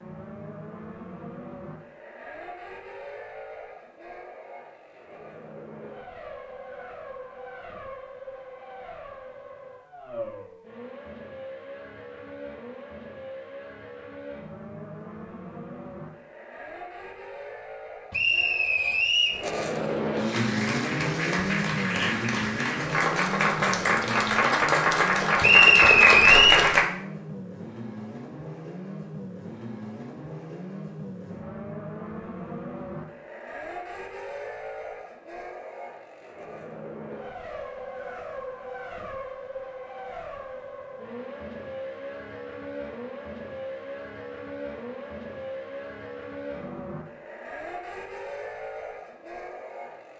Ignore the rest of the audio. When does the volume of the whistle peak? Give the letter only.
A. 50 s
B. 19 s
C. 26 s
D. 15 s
C.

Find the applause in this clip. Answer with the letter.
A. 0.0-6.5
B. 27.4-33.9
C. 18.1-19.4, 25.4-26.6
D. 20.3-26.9
D.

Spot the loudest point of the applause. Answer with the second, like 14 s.
26 s.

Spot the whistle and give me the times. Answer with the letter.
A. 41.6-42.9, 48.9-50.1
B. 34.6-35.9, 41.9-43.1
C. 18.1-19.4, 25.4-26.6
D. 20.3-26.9
C.